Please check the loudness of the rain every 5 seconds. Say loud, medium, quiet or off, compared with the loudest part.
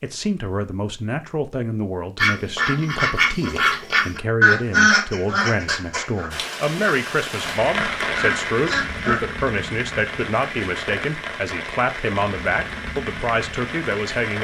off, loud, loud.